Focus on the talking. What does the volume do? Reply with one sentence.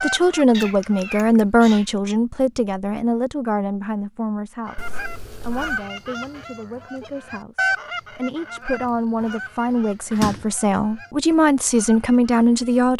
The loudness of the talking goes down, then up.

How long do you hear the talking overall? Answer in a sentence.
The talking can be heard for 13 seconds in total.